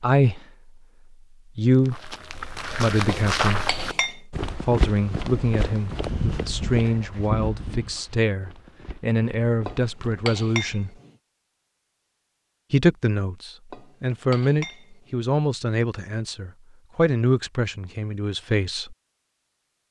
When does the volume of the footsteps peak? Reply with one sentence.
The volume of the footsteps peaks at 3 seconds.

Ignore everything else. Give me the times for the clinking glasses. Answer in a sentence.
The clinking glasses can be heard from 3.0 to 4.2 s, from 9.7 to 11.1 s and from 13.7 to 15.2 s.